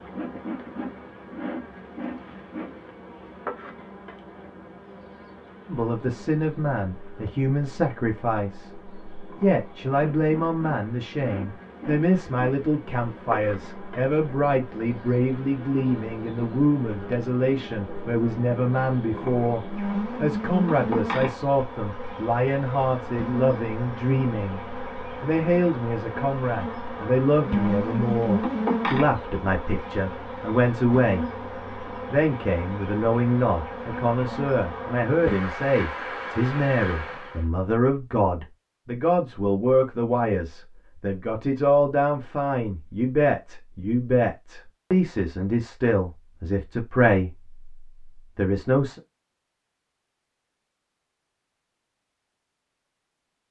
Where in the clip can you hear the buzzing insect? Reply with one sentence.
The buzzing insect can be heard from 0.0 to 37.5 s.